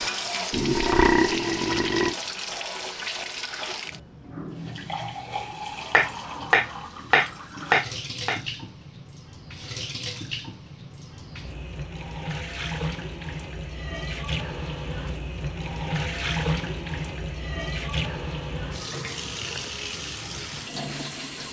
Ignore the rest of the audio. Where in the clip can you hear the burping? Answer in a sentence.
The burping can be heard from 0.5 to 2.1 s.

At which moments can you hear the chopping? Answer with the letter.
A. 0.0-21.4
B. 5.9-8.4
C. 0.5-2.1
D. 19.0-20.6
B.